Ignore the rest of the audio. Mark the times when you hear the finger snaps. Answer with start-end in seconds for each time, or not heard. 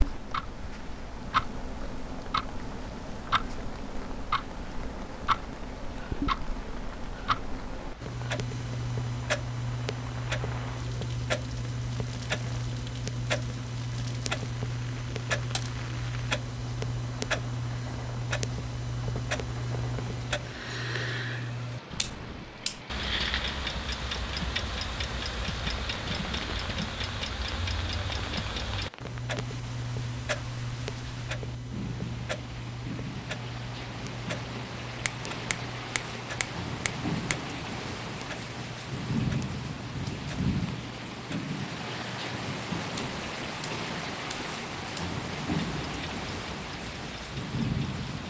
35.0-37.4.